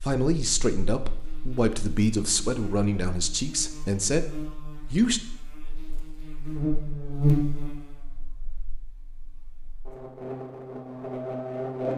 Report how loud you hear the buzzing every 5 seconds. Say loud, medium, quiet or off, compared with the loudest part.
quiet, loud, loud.